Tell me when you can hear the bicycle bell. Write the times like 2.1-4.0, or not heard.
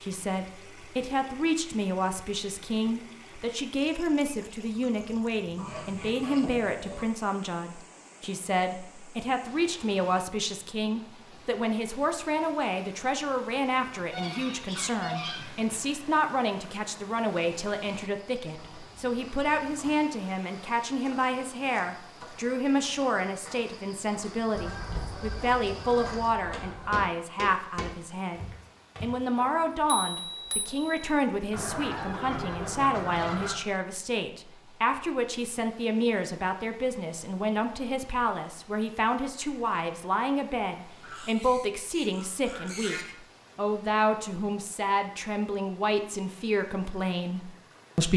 29.4-31.1.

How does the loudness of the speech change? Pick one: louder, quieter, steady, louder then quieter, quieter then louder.
steady.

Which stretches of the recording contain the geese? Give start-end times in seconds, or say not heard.
5.5-7.0, 14.1-15.8, 24.6-27.1, 31.5-33.5, 41.0-43.0.